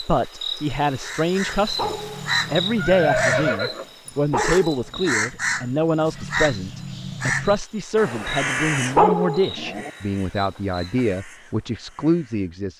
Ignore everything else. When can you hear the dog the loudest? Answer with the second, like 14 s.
9 s.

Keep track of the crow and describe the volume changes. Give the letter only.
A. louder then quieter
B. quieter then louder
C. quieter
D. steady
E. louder
C.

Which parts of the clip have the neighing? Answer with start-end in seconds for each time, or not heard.
2.8-3.9.